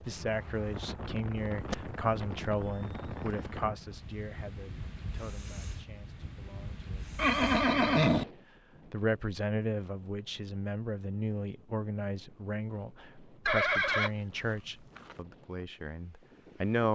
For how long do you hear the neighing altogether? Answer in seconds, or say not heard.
5 s.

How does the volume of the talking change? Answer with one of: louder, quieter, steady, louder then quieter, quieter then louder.
quieter then louder.